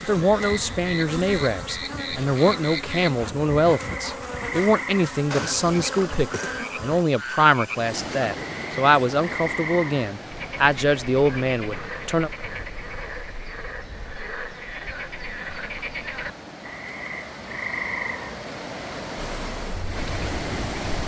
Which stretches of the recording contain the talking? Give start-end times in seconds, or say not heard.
0.0-12.3.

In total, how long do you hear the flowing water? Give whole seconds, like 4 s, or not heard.
13 s.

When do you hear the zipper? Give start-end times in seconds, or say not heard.
not heard.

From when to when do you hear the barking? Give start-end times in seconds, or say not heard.
not heard.